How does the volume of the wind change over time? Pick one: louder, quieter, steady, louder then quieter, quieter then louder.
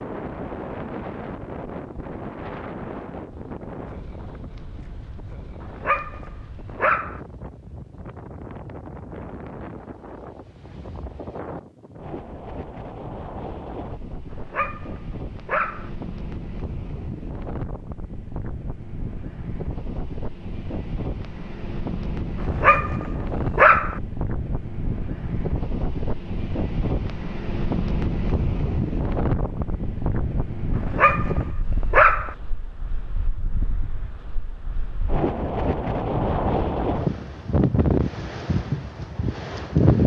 louder.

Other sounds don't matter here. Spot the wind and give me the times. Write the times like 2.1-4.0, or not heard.
0.0-40.0.